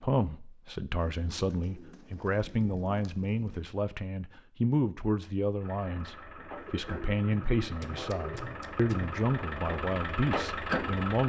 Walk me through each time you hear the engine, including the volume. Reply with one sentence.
The engine can be heard from 5.6 to 11.2 s, getting louder.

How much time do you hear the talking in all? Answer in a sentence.
The talking can be heard for 11 seconds in total.